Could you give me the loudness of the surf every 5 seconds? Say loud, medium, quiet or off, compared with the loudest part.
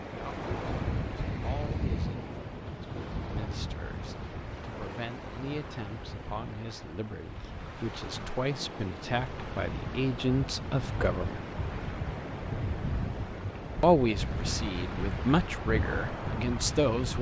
loud, medium, loud, loud.